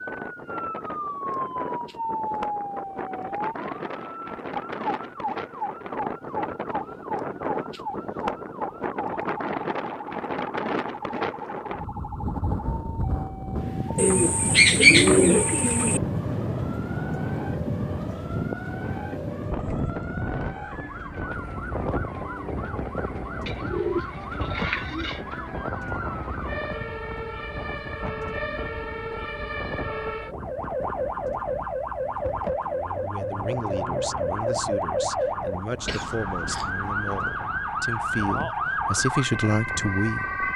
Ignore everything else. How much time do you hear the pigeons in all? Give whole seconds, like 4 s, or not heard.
4 s.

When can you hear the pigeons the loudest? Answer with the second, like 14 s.
15 s.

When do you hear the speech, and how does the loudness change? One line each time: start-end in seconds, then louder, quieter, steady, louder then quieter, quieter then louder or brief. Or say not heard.
33.0-40.4 louder.